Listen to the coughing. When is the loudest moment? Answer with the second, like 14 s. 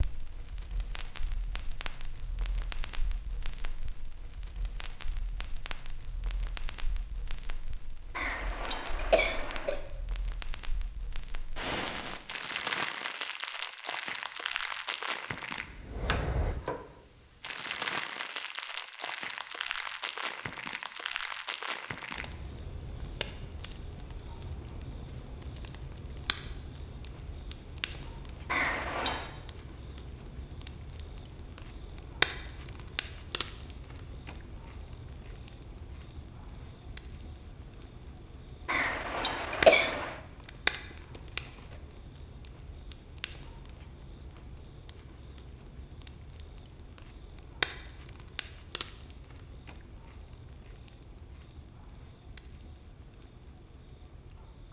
40 s.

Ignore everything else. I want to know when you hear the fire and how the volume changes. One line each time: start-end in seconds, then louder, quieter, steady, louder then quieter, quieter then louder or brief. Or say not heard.
0.0-54.6 louder then quieter.